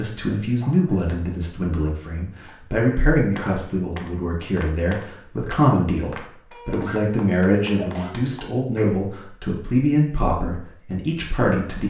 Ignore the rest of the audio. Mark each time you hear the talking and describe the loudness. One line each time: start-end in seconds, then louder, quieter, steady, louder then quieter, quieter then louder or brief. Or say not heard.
0.0-11.8 steady.